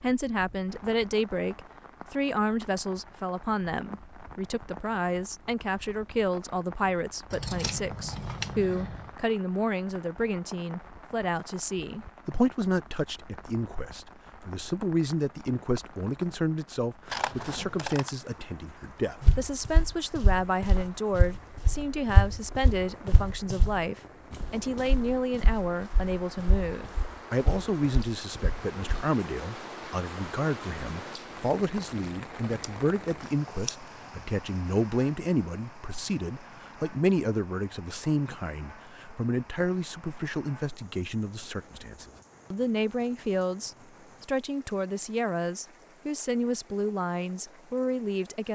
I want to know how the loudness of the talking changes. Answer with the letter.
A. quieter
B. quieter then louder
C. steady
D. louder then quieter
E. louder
C.